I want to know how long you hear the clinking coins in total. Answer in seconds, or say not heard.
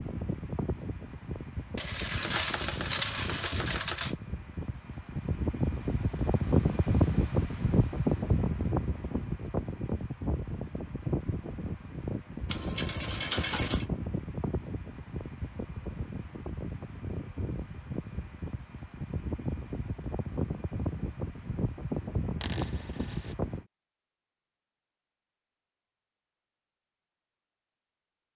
5 s.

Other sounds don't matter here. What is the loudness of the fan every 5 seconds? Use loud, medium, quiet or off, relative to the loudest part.
medium, loud, medium, medium, medium, off.